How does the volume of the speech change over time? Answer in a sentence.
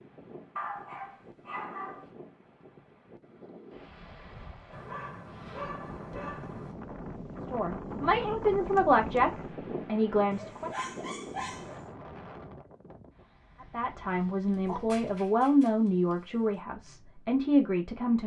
The loudness of the speech stays about the same.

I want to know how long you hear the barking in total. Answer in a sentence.
The barking can be heard for 7 seconds in total.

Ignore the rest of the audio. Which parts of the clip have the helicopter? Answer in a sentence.
You can't hear the helicopter here.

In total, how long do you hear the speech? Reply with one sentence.
The speech can be heard for 8 seconds in total.